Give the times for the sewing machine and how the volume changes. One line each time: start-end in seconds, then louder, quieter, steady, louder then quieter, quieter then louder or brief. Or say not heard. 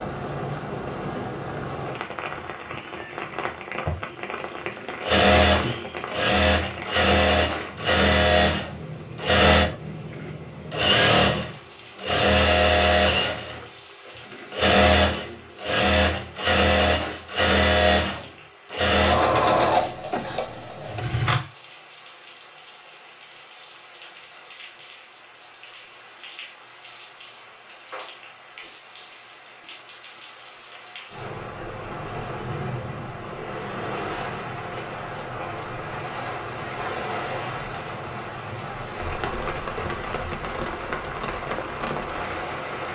4.5-21.4 steady.